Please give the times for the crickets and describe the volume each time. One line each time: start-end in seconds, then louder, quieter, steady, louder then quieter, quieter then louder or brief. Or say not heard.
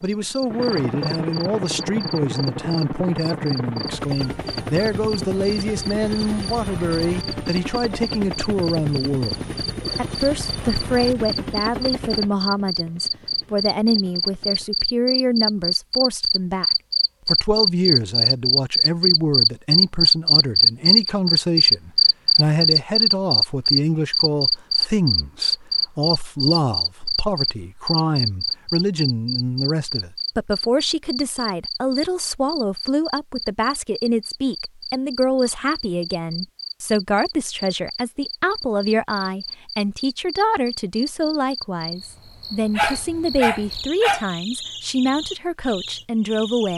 0.0-46.7 louder then quieter.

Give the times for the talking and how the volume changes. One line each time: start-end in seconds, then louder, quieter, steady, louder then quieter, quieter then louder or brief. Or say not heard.
0.0-46.7 steady.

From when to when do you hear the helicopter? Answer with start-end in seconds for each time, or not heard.
0.0-14.9.